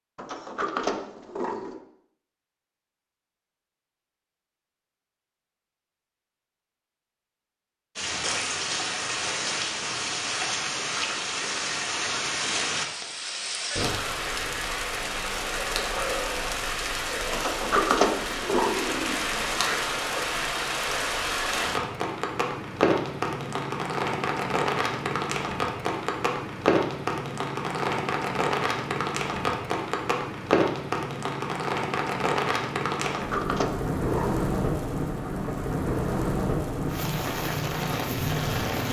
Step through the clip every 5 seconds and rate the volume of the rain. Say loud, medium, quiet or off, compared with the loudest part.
off, loud, loud, loud, loud, loud, loud, loud.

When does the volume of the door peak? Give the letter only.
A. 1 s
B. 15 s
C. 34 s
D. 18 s
D.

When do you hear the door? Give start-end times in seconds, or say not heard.
0.1-1.8, 17.3-19.1, 33.1-34.4.